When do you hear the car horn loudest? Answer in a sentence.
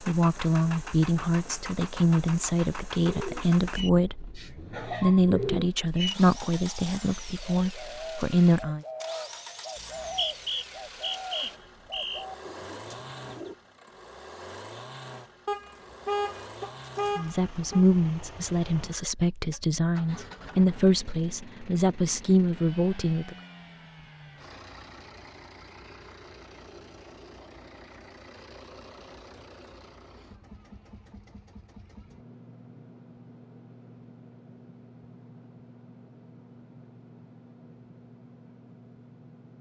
The loudest moment of the car horn is at 16 seconds.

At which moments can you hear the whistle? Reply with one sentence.
The whistle can be heard from 9.8 to 12.2 s.